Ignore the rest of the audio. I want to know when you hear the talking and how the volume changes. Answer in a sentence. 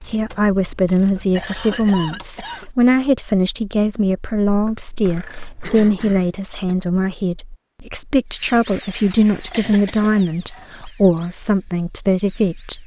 You can hear the talking from 0.0 to 12.8 s, at a steady volume.